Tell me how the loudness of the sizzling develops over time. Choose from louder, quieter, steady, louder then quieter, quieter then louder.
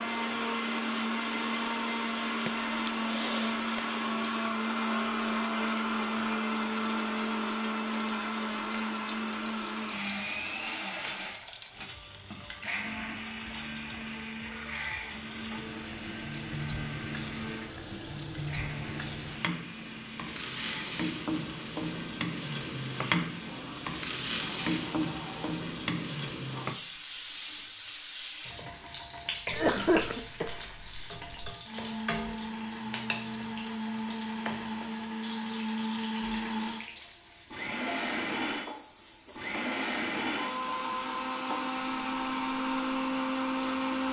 louder then quieter.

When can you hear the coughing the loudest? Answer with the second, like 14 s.
30 s.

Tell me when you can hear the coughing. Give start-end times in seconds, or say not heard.
2.5-3.8, 29.5-31.6.